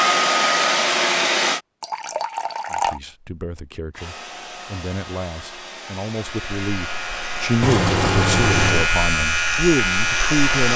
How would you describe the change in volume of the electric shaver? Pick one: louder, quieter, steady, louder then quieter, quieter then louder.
louder.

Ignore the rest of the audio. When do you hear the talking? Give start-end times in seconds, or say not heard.
2.7-10.7.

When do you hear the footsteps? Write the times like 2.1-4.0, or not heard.
not heard.